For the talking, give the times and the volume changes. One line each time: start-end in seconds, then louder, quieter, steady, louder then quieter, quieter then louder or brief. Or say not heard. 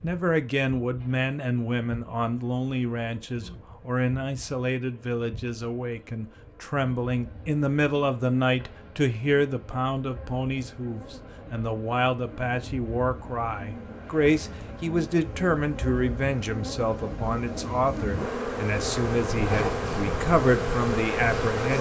0.0-21.7 steady.